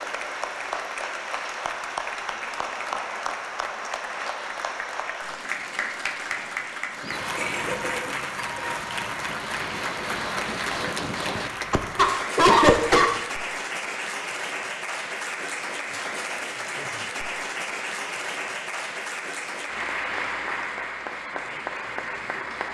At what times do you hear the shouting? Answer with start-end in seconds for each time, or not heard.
not heard.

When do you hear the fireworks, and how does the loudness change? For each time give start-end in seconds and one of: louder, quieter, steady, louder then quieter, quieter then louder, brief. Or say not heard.
7.0-12.9 louder.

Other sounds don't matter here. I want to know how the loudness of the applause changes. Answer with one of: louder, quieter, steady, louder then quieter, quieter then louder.
steady.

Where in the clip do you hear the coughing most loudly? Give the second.
13 s.